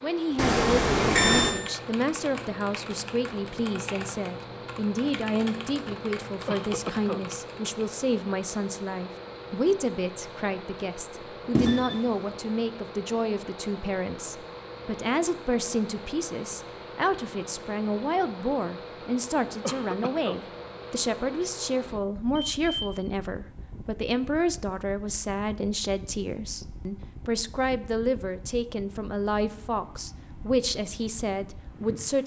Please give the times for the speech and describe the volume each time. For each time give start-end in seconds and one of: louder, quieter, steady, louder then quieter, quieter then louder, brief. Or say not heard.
0.0-32.2 steady.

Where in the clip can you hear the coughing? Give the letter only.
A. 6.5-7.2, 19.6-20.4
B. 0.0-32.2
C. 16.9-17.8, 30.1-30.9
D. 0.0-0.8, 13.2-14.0
A.